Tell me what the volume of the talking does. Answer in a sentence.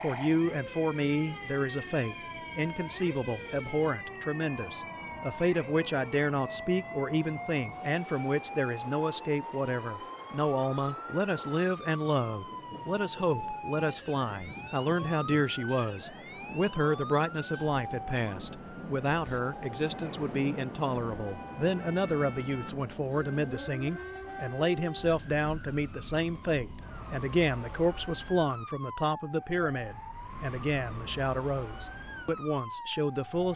The loudness of the talking stays about the same.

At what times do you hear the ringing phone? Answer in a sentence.
The ringing phone can't be heard in this clip.